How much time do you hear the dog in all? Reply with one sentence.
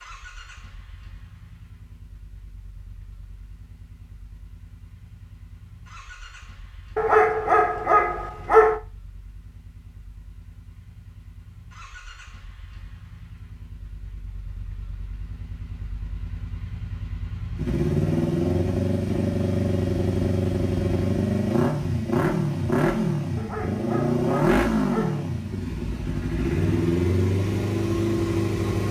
The dog can be heard for 4 seconds in total.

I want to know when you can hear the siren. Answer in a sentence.
The siren can't be heard in this clip.